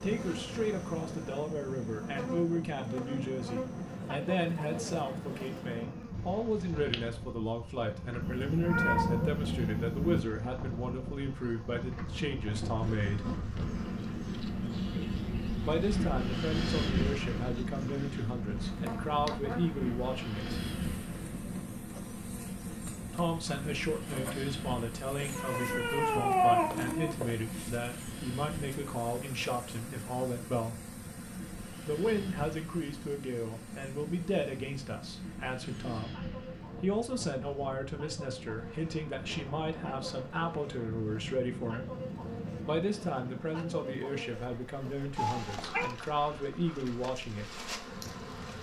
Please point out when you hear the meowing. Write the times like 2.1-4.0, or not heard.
8.2-10.2, 25.1-27.4, 45.1-46.0.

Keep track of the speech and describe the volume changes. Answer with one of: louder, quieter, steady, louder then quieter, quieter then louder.
steady.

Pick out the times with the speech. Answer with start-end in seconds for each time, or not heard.
0.0-13.2, 15.7-20.6, 23.1-30.8, 31.9-36.1, 36.8-41.9, 42.6-47.6.